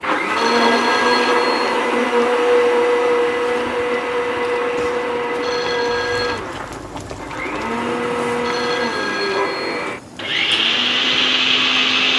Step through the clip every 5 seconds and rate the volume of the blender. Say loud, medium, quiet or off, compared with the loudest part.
loud, medium, loud.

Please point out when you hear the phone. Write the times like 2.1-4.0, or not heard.
0.3-1.6, 5.4-6.5, 8.4-9.7.